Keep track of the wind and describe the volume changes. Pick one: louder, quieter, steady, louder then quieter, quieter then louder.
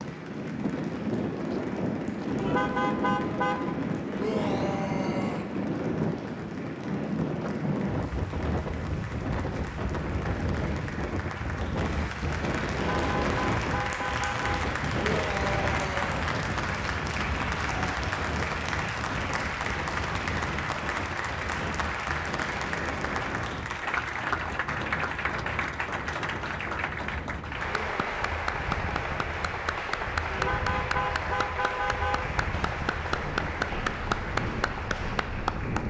quieter.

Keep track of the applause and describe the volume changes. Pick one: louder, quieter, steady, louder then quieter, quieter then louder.
louder.